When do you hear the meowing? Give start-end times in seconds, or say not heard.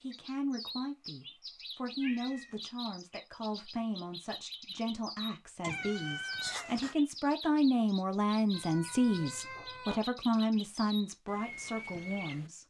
2.0-2.6, 5.6-7.0, 8.5-10.0.